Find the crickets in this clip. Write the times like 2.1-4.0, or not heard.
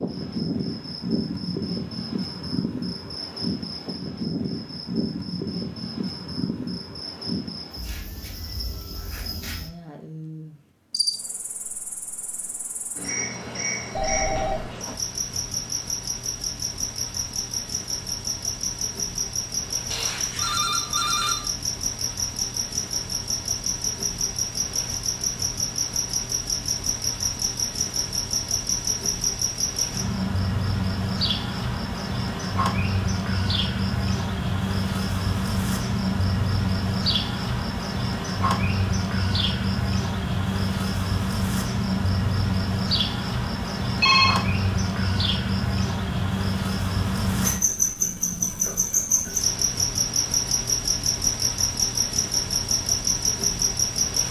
0.0-54.2.